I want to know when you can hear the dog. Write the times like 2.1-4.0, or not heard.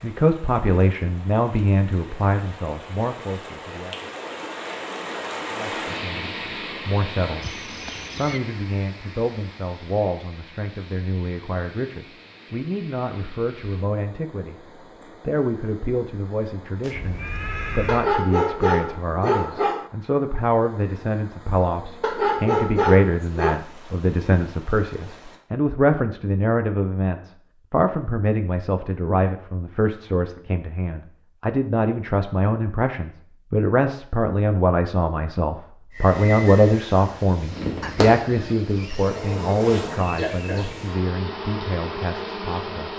17.9-19.9, 22.0-23.6.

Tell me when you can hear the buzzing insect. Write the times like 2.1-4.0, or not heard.
35.9-42.9.